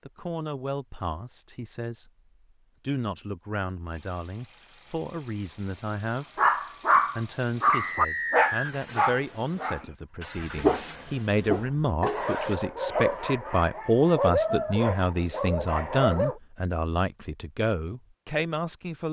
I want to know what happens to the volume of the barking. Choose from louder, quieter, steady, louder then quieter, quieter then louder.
quieter.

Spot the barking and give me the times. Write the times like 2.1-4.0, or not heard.
6.3-16.4.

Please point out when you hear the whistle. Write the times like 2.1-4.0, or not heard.
7.7-8.8.